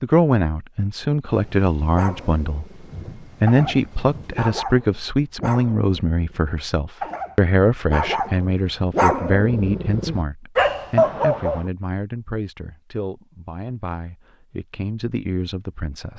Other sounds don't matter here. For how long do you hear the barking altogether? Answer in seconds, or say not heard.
10 s.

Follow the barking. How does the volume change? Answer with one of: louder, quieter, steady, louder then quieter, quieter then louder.
louder.